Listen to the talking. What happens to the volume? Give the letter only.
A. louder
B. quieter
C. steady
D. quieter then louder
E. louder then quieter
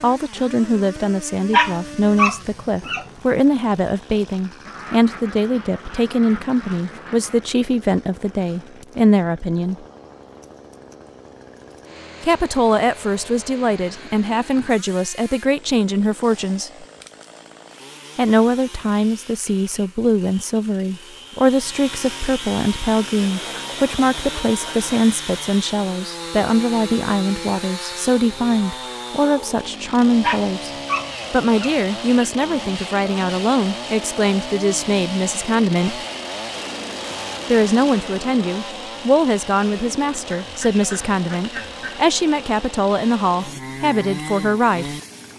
C.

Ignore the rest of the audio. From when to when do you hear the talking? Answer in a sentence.
The talking can be heard from 0.0 to 9.8 s, from 12.2 to 16.9 s, from 18.1 to 30.7 s, from 31.3 to 36.0 s and from 37.5 to 44.9 s.